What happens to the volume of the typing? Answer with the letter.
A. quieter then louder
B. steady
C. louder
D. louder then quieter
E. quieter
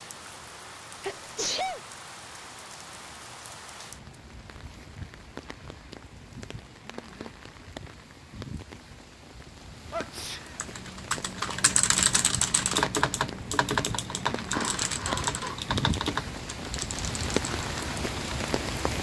E.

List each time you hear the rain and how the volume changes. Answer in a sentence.
You can hear the rain from 0.0 to 18.9 s, getting louder.